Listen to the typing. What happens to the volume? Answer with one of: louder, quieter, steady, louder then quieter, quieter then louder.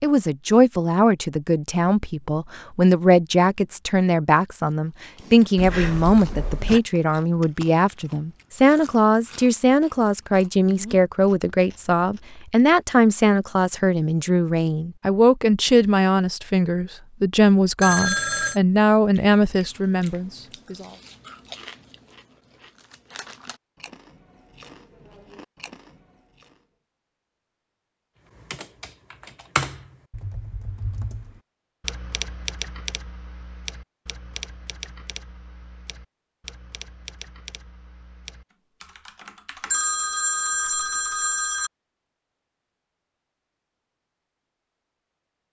quieter.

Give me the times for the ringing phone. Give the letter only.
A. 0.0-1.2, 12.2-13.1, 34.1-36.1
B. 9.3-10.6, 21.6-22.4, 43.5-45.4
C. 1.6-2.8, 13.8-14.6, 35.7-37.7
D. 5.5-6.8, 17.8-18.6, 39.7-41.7
D.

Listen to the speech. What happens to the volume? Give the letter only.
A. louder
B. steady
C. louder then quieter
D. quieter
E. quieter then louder
B.